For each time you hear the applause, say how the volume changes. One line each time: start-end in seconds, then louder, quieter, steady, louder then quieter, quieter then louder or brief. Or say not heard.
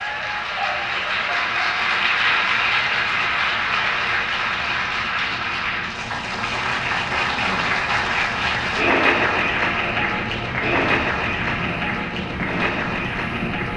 0.0-13.7 steady.